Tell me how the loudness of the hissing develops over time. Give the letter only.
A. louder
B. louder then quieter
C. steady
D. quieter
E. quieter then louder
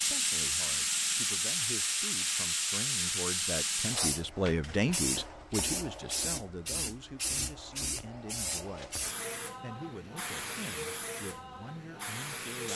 D.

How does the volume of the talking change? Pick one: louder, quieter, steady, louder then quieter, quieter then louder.
louder then quieter.